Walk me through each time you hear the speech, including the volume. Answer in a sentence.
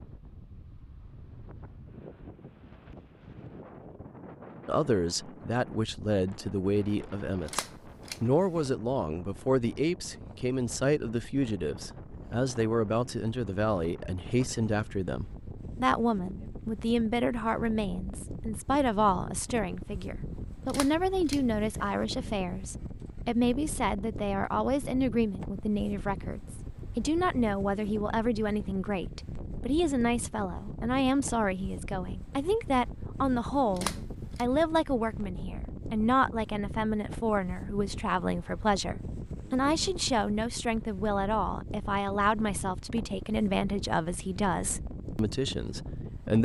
The speech can be heard from 4.7 to 46.4 s, at a steady volume.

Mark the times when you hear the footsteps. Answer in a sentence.
You can't hear the footsteps here.